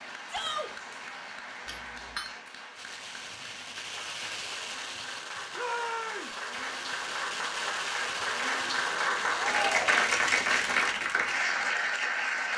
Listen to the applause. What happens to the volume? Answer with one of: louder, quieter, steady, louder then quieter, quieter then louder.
louder.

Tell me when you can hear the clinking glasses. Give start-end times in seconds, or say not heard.
1.6-2.4.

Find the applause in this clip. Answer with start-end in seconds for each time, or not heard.
0.0-12.5.